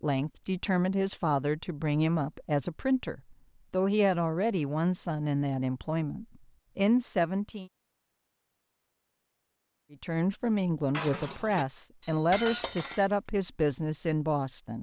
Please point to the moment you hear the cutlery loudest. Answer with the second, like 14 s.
12 s.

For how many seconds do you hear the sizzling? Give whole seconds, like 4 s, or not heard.
not heard.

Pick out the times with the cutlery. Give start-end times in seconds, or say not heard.
10.9-13.1.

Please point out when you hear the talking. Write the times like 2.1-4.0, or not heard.
0.0-7.7, 9.9-14.7.